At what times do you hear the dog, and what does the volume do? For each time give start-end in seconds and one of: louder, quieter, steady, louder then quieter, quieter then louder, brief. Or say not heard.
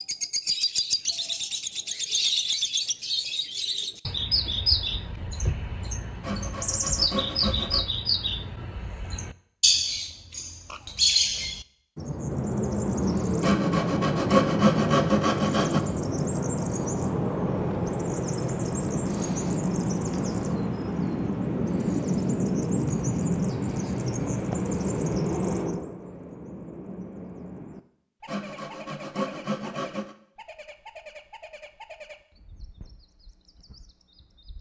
not heard.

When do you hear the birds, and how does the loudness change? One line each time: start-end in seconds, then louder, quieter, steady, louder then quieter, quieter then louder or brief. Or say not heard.
0.0-34.5 quieter.